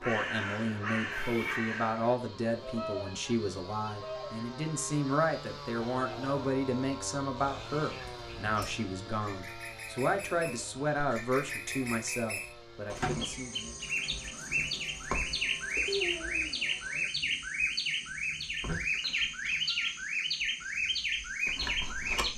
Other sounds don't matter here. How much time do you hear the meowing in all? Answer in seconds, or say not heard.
2 s.